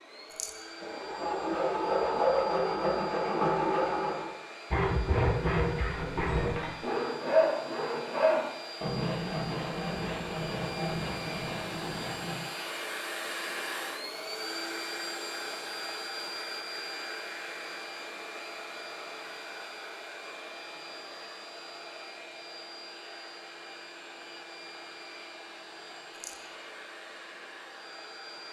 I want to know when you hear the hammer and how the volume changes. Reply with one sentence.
You can't hear the hammer here.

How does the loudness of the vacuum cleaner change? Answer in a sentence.
The loudness of the vacuum cleaner goes up, then down.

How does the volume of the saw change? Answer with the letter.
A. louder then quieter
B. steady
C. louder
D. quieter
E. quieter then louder
D.